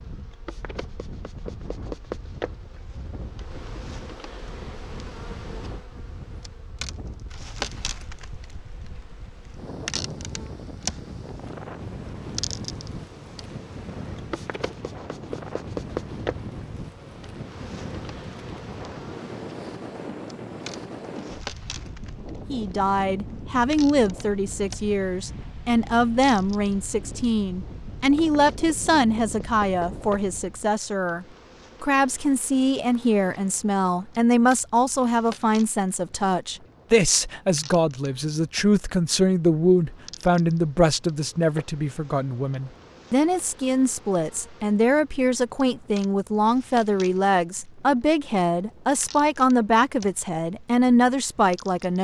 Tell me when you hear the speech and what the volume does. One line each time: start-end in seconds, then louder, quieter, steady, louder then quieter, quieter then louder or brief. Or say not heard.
22.5-52.0 steady.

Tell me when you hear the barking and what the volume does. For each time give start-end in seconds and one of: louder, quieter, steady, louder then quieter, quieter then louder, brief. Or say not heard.
not heard.